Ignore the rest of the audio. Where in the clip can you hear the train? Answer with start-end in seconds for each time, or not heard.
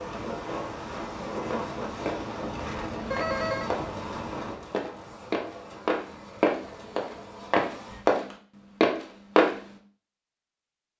0.0-8.1.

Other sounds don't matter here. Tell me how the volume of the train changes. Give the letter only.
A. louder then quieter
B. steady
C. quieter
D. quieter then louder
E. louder
C.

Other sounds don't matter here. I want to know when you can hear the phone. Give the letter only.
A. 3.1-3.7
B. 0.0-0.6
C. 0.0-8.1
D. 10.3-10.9
A.